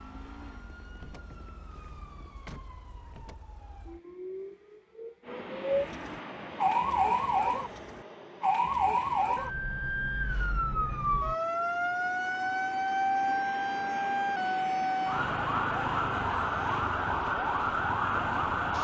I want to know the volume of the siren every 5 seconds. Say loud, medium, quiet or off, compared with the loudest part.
quiet, loud, loud, loud.